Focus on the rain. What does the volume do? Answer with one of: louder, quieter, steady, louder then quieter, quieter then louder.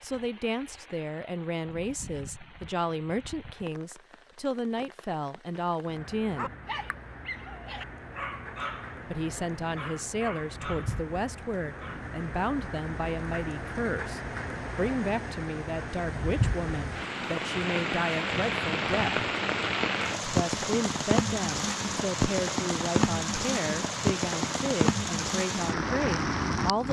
louder.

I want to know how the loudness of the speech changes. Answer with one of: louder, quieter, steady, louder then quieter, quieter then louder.
steady.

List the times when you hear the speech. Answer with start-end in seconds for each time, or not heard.
0.0-6.5, 9.1-19.2, 20.2-26.8.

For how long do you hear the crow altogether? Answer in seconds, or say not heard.
not heard.